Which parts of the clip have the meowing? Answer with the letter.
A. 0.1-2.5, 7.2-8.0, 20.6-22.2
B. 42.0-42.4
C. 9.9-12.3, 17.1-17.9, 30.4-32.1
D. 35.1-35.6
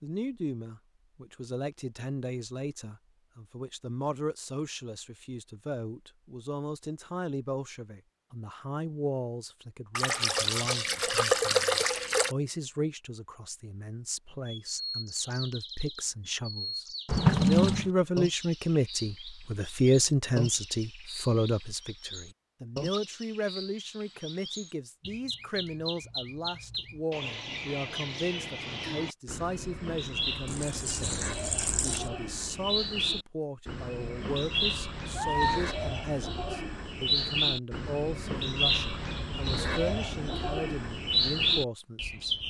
D.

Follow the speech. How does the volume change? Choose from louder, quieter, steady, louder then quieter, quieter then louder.
louder then quieter.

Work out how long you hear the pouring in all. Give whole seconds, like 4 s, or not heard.
5 s.